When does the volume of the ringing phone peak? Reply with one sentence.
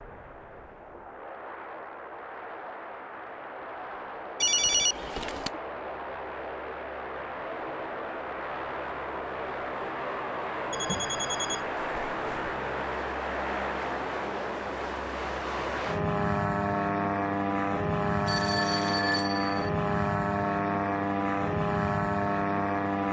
The loudest moment of the ringing phone is at 5 seconds.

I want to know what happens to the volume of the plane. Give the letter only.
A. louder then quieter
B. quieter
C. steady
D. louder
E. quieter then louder
D.